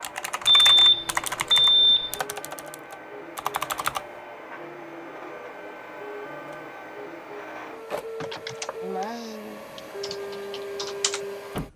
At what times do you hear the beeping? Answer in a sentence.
The beeping can be heard from 0.5 to 2.2 s.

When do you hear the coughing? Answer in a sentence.
You can hear the coughing from 8.2 to 9.7 s.